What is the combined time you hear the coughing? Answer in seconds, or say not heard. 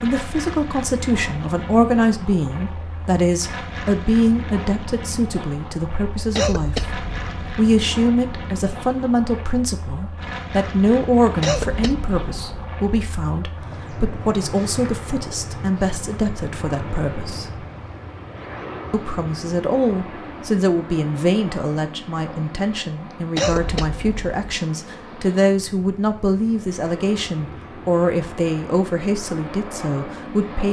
4 s.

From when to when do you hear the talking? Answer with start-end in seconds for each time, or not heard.
0.0-17.6, 18.9-30.6.